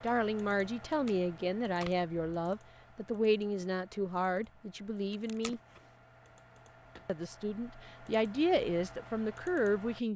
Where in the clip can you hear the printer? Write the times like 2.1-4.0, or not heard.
not heard.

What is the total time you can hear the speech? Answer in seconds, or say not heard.
9 s.